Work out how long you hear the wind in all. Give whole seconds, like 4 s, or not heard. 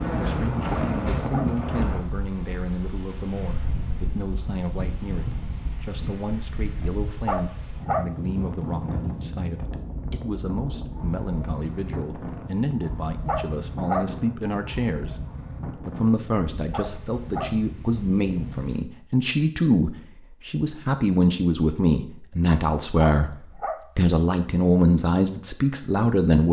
19 s.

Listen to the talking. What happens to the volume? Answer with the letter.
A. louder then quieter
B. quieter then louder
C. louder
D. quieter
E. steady
C.